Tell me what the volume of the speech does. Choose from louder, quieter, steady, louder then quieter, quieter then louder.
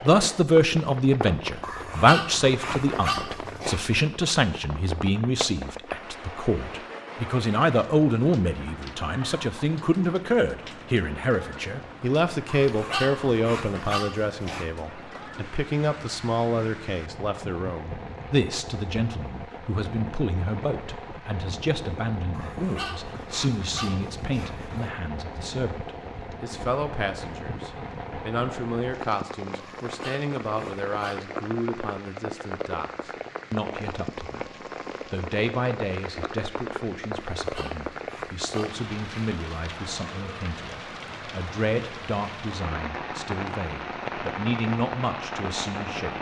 quieter.